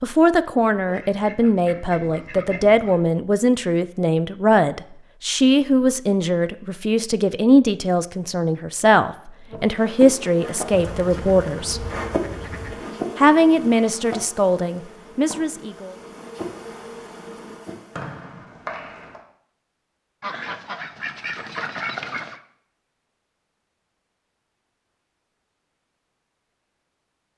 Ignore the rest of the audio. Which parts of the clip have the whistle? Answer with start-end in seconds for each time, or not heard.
17.9-19.2.